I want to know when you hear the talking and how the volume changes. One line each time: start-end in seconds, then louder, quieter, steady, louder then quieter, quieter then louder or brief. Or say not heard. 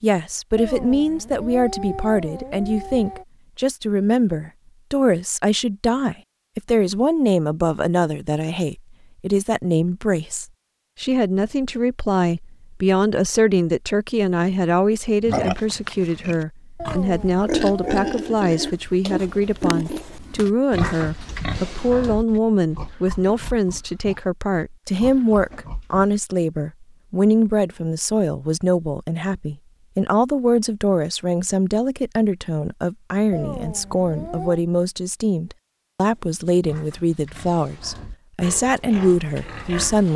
0.0-40.1 steady.